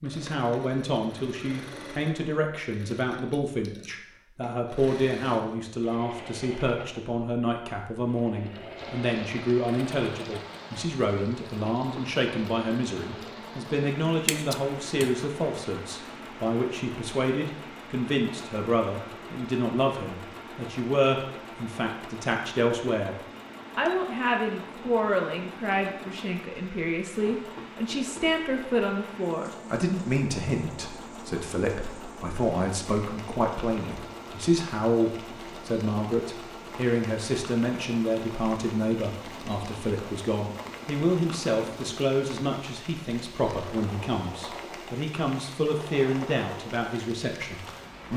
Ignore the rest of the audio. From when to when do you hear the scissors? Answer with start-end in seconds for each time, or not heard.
14.1-15.2.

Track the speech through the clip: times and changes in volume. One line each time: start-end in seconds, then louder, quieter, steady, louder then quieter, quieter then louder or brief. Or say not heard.
0.0-23.1 steady
23.8-48.1 steady.